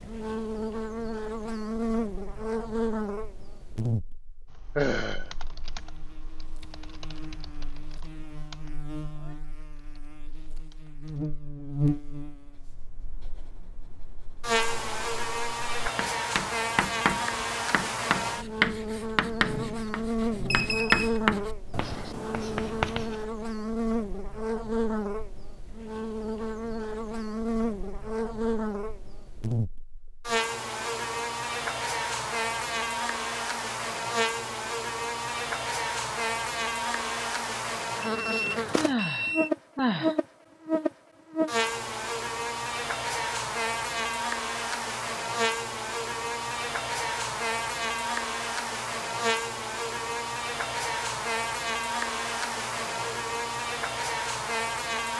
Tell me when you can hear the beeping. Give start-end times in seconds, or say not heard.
20.5-21.2, 38.0-39.5.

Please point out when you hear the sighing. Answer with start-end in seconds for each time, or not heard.
4.8-5.3, 38.8-40.1.